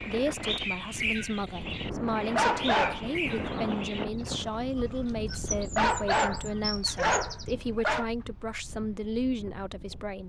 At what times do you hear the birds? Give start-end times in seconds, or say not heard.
0.0-7.5.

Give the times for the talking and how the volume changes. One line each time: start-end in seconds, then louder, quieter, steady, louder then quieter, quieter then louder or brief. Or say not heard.
0.0-10.2 steady.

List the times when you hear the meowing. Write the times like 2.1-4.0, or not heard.
not heard.